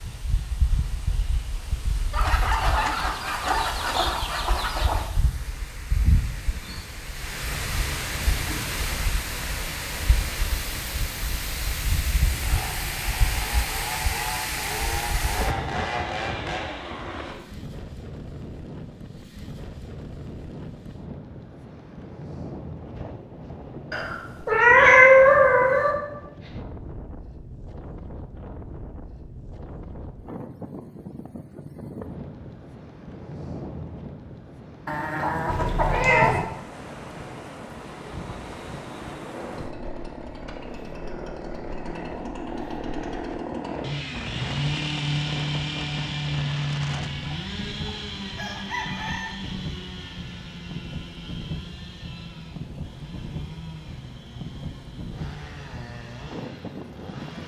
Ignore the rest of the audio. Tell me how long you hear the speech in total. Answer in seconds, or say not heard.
not heard.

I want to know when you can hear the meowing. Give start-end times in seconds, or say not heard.
23.9-25.9, 35.5-36.4.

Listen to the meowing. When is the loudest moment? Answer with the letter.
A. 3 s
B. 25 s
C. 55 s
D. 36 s
B.